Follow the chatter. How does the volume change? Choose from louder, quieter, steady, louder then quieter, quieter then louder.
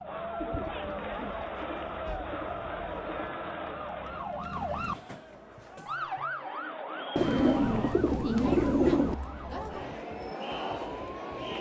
quieter then louder.